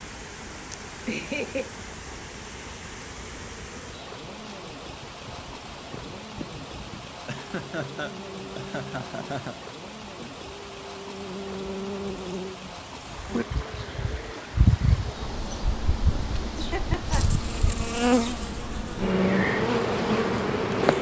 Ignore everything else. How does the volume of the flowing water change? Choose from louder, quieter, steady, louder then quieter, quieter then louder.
steady.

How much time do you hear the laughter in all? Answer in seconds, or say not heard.
4 s.